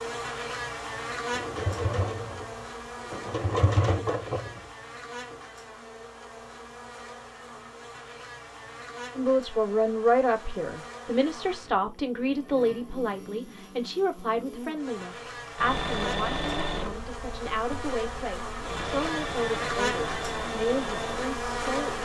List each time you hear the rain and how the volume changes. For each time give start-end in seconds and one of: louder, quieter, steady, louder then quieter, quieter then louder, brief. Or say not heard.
not heard.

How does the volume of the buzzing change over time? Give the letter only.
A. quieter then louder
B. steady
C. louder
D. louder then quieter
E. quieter
A.